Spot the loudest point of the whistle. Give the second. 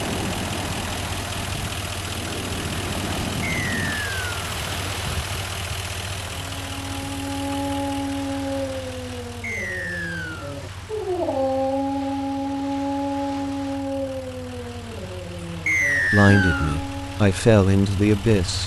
16 s.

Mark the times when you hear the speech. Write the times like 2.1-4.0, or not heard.
15.9-18.6.